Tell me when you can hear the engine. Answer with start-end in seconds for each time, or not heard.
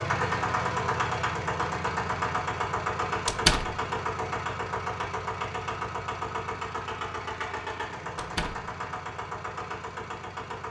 0.0-10.6.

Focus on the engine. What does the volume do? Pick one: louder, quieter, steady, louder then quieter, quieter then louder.
quieter.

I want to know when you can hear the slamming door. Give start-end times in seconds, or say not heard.
3.2-3.8, 8.2-8.7.